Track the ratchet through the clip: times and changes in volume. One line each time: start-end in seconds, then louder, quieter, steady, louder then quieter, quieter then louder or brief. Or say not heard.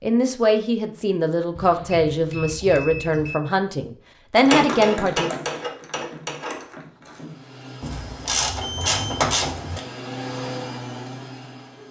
4.3-9.8 quieter then louder.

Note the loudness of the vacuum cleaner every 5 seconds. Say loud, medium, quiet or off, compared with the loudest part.
off, medium, loud.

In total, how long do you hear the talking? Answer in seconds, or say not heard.
5 s.